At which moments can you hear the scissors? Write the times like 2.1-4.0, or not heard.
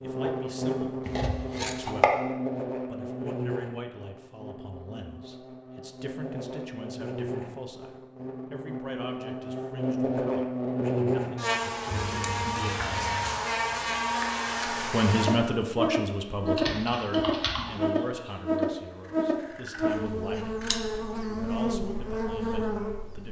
1.1-2.1, 11.9-13.3, 19.6-20.8.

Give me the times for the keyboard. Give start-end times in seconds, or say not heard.
16.4-18.6.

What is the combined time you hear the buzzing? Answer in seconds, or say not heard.
23 s.